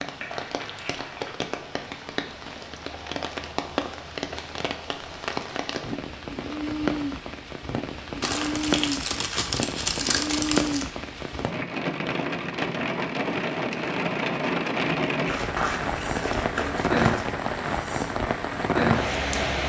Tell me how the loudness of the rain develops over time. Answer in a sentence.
The volume of the rain goes up.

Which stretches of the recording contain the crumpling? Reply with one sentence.
The crumpling can be heard from 0.1 to 1.3 s, from 8.2 to 10.9 s and from 15.2 to 17.4 s.